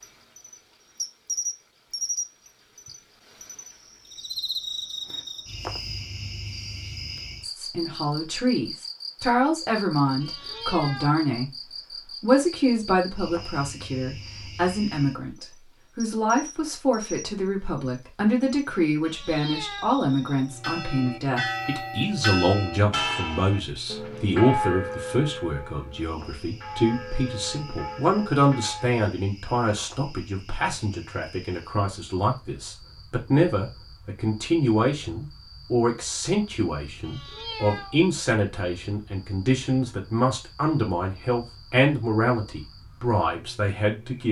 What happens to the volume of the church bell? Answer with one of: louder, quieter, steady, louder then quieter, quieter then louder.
quieter.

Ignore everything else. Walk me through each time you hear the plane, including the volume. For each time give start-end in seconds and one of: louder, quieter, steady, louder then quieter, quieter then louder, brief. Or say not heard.
not heard.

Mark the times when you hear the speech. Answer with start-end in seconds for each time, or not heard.
7.4-11.6, 12.2-44.2.